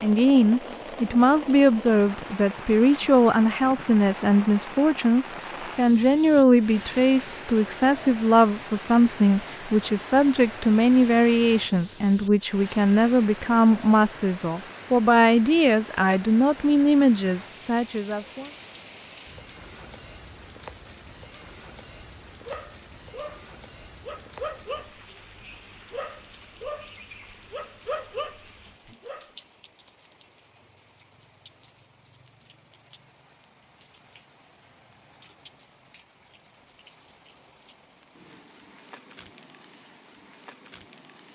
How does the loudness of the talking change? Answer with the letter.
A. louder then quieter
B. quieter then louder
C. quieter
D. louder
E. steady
E.